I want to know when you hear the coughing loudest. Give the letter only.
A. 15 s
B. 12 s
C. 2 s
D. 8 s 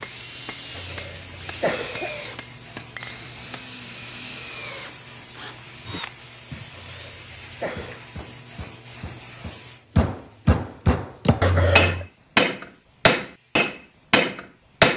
B.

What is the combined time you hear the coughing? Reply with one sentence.
You can hear the coughing for 3 seconds altogether.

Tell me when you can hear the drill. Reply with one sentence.
The drill can be heard from 0.0 to 7.2 s.